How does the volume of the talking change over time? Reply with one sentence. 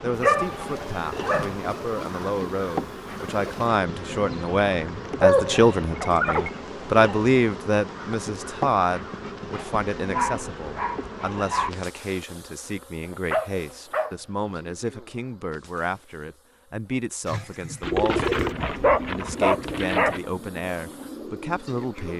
The volume of the talking goes up, then down.